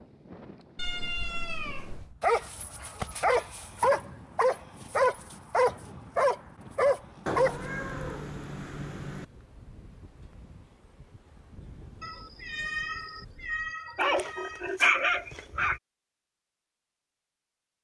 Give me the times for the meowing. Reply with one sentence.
The meowing can be heard from 0.8 to 2.1 s, from 7.2 to 9.2 s and from 12.0 to 14.6 s.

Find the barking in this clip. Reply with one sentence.
You can hear the barking from 2.2 to 7.5 s and from 13.9 to 15.8 s.